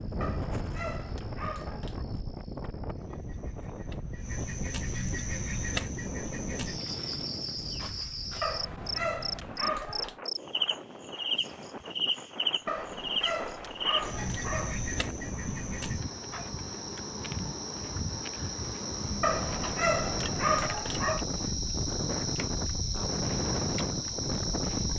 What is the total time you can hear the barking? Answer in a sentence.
You can hear the barking for 8 seconds altogether.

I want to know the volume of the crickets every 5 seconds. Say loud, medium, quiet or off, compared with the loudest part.
quiet, loud, loud, medium, loud.